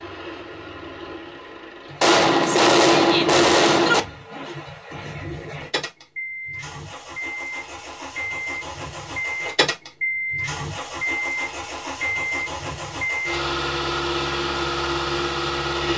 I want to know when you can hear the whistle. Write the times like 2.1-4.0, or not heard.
not heard.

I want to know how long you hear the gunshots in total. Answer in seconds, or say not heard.
2 s.